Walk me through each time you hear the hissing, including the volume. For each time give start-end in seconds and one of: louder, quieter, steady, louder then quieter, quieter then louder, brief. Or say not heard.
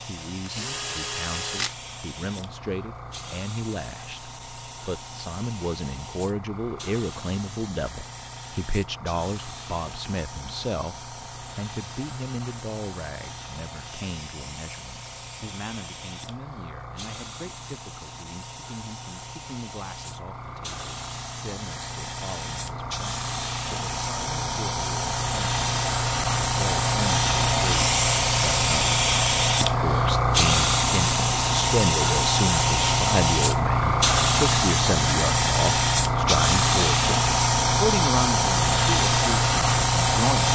0.0-40.5 louder.